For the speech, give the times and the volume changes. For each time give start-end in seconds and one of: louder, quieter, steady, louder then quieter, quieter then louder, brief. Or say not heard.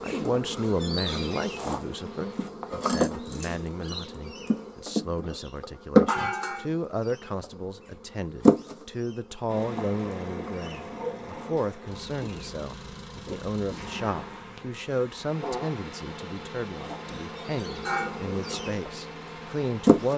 0.0-20.1 steady.